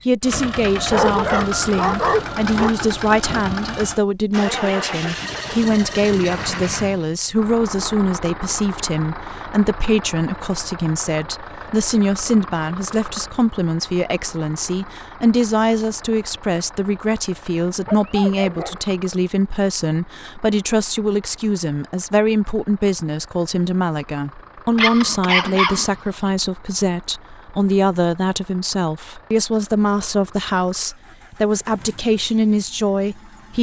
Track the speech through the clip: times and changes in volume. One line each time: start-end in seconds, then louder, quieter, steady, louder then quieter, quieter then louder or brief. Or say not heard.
0.1-33.5 steady.